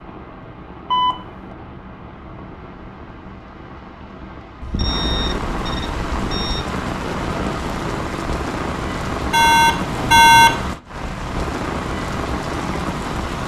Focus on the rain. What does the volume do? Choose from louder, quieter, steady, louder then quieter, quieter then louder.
louder.